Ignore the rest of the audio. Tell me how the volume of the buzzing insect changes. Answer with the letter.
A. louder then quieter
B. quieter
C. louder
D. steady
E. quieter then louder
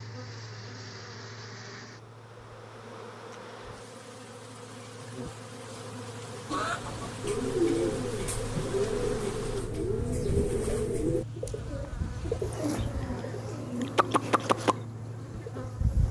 C.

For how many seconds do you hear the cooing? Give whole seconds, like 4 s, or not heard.
9 s.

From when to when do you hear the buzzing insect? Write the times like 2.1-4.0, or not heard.
0.0-16.0.